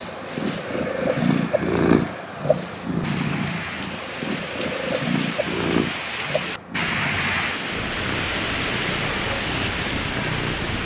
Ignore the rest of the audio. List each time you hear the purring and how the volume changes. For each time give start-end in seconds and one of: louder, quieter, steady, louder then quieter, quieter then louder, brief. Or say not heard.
0.0-10.8 quieter.